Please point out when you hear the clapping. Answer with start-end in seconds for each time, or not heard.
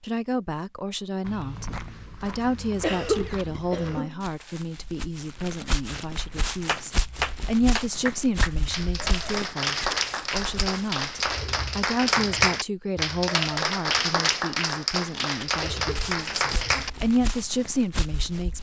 6.2-17.2.